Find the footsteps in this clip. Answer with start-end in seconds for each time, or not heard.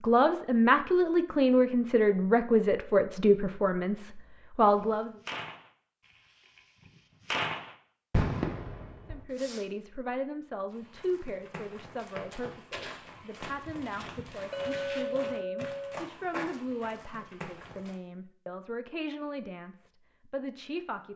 10.7-17.9.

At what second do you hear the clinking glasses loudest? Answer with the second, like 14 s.
15 s.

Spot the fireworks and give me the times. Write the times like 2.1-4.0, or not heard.
4.8-9.7.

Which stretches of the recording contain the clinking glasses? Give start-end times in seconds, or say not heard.
14.5-16.1.